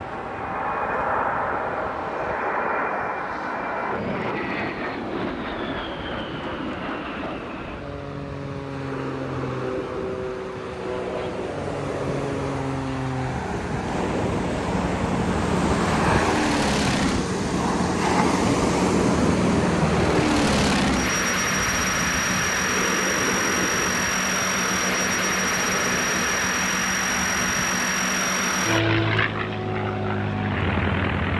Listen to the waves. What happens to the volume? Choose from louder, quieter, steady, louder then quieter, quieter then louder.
louder then quieter.